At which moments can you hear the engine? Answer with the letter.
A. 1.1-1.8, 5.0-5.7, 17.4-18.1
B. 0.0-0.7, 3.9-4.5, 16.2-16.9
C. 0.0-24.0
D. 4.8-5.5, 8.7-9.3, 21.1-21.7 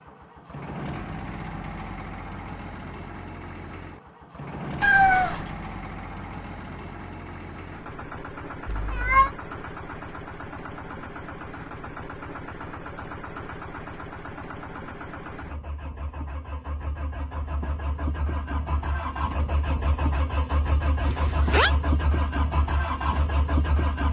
C.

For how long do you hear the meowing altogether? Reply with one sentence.
The meowing can be heard for 2 seconds in total.